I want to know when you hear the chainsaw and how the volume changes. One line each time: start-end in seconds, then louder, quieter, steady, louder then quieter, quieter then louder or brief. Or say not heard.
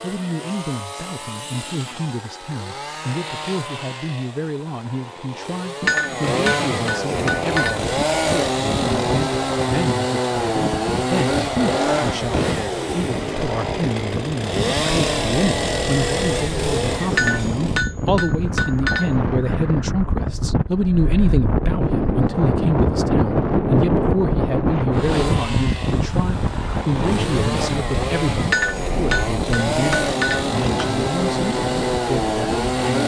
0.0-17.9 louder
24.9-33.0 louder.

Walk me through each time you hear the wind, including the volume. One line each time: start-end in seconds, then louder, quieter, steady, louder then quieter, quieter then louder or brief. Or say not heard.
7.1-32.8 louder then quieter.